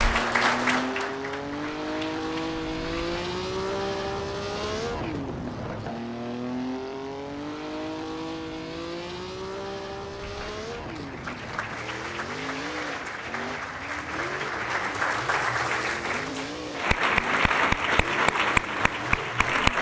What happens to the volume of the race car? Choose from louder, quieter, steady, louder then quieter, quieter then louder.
quieter.